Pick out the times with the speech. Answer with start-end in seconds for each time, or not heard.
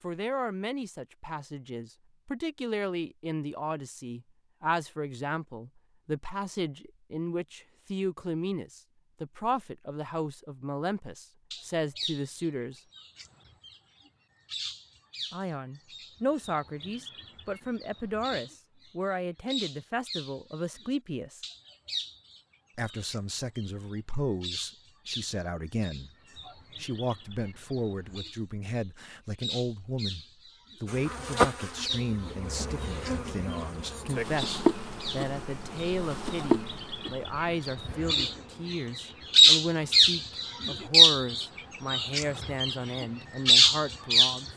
0.0-12.8, 15.3-21.4, 22.8-26.1, 26.8-44.5.